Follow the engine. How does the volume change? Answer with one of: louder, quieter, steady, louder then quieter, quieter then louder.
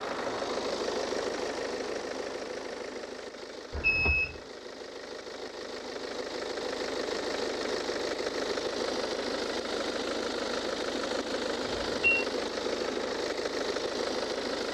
quieter then louder.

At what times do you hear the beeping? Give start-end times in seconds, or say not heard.
3.8-4.3, 11.7-12.2.